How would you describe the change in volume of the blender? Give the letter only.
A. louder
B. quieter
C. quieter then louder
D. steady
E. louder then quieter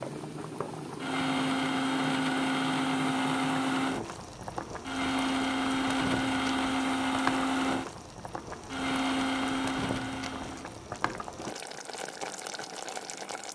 D.